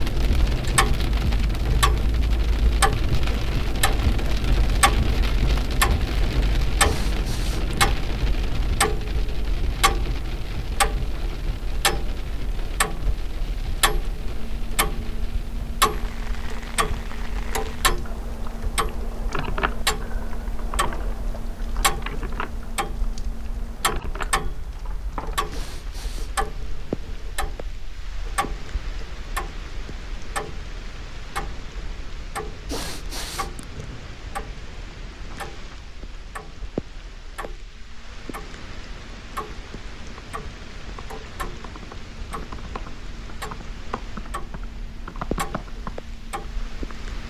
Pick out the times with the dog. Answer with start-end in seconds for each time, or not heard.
not heard.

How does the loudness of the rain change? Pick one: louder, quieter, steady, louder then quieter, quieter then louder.
quieter.